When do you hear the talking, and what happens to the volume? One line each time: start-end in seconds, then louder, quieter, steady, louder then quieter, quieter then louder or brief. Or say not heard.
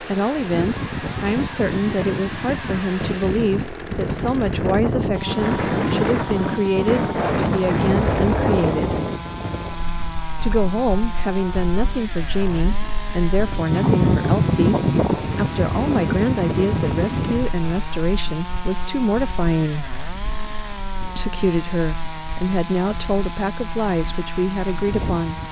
0.0-8.9 steady
10.4-19.9 steady
21.1-25.4 steady.